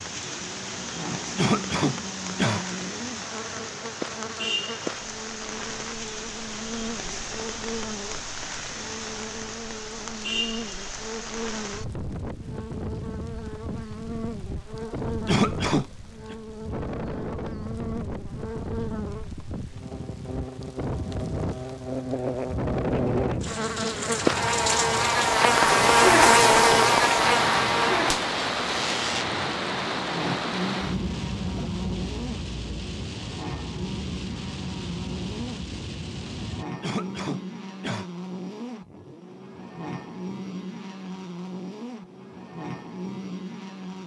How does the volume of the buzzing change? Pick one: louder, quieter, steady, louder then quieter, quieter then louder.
louder then quieter.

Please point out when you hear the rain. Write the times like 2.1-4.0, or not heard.
0.0-36.6.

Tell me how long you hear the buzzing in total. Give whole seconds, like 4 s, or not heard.
44 s.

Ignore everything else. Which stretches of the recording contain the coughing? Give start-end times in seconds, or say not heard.
1.4-2.6, 15.2-16.4, 36.8-38.0.